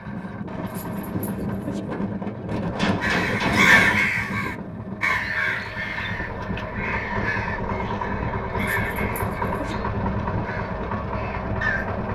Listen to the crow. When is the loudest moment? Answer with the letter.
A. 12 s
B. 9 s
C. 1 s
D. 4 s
D.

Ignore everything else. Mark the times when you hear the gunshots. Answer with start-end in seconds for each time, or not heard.
2.8-4.0.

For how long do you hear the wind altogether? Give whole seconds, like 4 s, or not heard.
12 s.